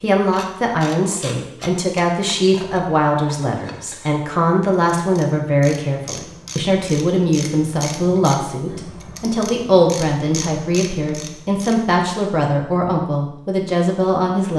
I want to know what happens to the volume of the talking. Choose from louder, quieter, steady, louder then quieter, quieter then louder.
steady.